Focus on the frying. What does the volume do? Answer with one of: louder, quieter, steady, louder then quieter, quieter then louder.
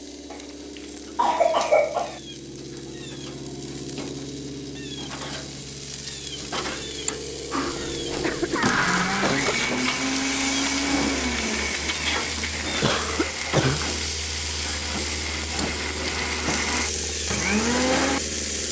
louder.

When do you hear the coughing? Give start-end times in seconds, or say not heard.
0.3-2.2, 7.7-9.8, 12.8-13.9.